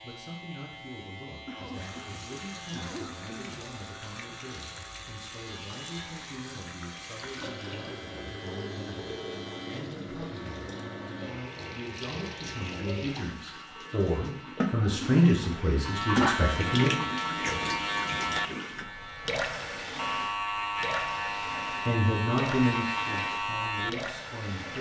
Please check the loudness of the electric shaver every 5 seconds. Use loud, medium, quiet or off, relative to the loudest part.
quiet, quiet, quiet, loud, loud.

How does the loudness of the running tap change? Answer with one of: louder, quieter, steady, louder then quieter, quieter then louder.
louder then quieter.